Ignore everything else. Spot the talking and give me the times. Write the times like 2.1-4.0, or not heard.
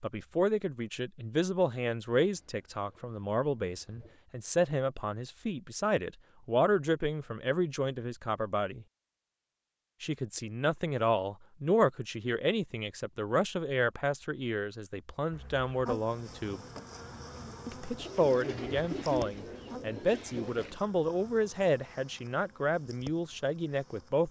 0.0-8.8, 10.0-16.6, 17.6-24.2.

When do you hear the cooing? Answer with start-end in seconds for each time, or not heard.
2.2-4.2, 17.9-20.8.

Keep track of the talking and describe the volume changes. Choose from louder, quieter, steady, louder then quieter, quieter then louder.
steady.